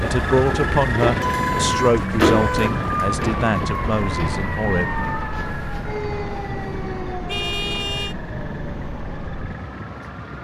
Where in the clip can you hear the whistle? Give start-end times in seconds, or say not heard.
not heard.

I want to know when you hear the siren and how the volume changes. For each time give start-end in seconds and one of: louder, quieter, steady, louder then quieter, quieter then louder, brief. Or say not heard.
0.0-10.3 quieter.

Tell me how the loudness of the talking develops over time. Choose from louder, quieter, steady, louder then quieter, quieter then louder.
quieter.